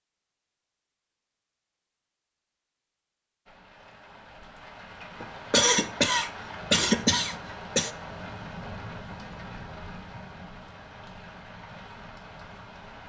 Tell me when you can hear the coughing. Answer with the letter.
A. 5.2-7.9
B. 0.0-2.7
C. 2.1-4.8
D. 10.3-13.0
A.